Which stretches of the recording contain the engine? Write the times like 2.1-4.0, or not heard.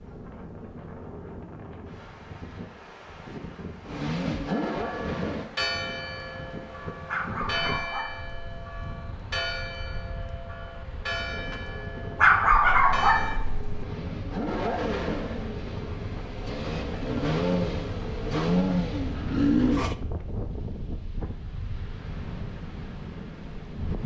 3.9-5.5, 11.5-19.9.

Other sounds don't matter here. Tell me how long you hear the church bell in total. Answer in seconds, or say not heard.
9 s.